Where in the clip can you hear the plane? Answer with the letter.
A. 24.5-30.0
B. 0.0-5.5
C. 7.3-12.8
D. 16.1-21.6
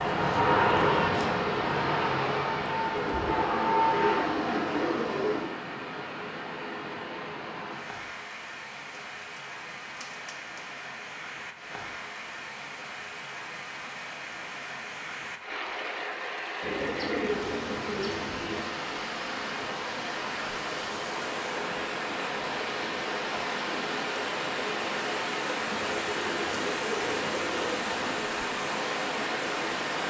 B.